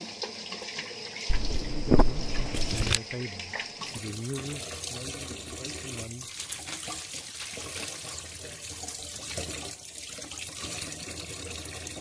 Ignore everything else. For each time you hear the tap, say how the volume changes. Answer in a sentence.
The tap can be heard from 0.0 to 11.9 s, at a steady volume.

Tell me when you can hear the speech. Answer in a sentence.
The speech can be heard from 1.8 to 6.3 s.